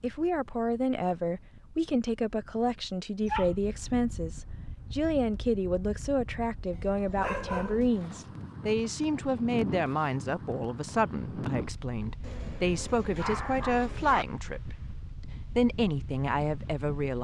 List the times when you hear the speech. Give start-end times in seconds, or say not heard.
0.0-17.1.